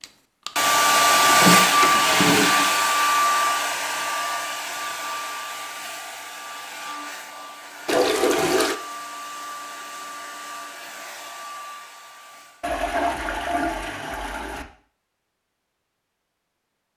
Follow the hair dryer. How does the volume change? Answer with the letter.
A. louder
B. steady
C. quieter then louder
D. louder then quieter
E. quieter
E.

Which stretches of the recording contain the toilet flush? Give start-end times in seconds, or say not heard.
1.1-2.8, 7.8-8.8, 12.6-14.7.